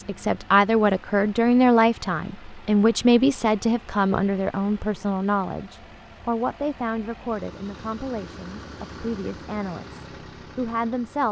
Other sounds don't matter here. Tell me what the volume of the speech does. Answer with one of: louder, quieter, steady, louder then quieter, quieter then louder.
quieter.